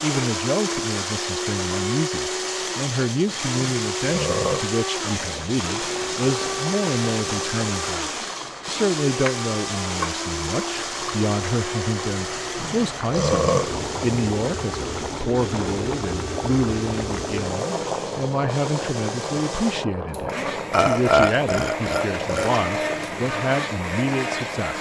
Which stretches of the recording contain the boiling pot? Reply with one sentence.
The boiling pot can be heard from 5.0 to 24.7 s.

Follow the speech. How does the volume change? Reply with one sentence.
The volume of the speech stays about the same.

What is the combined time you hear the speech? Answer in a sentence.
The speech can be heard for 25 seconds in total.